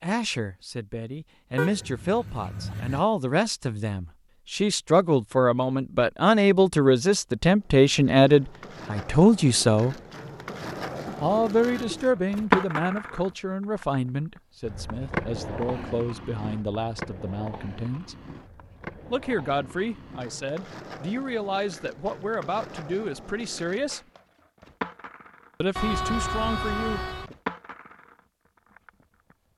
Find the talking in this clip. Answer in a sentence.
The talking can be heard from 0.0 to 9.9 s, from 11.2 to 18.1 s, from 19.1 to 24.0 s and from 25.6 to 27.4 s.